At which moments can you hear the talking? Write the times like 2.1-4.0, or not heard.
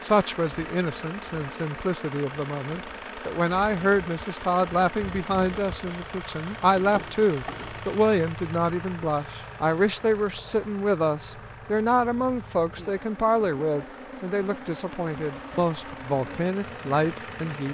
0.0-17.6.